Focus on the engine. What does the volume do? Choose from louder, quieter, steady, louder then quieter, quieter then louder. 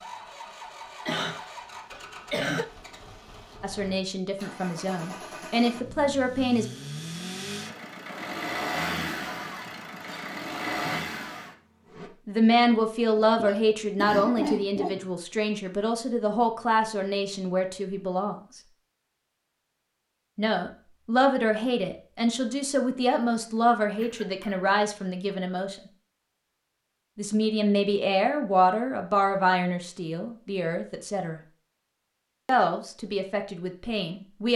louder.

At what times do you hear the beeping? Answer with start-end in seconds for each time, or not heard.
not heard.